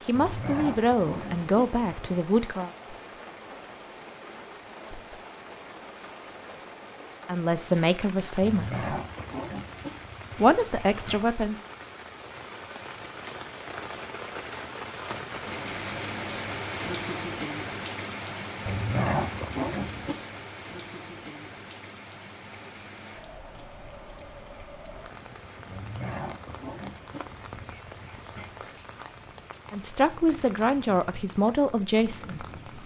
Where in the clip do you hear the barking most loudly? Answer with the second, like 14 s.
19 s.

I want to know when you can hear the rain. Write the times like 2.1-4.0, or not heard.
0.0-32.8.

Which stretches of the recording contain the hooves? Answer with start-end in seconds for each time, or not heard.
not heard.